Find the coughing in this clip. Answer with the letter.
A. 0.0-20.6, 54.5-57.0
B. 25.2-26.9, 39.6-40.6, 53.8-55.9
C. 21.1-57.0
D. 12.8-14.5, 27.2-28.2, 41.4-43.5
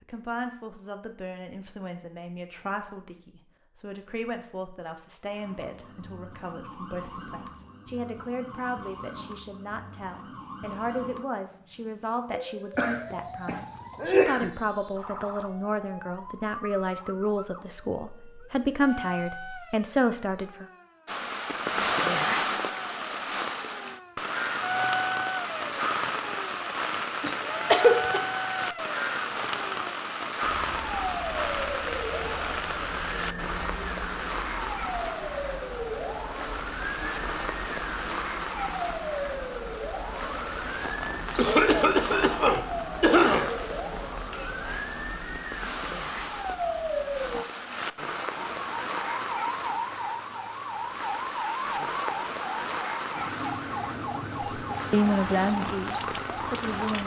D.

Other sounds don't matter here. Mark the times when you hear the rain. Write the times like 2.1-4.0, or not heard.
21.1-57.0.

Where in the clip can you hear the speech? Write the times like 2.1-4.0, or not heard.
0.0-20.6, 54.5-57.0.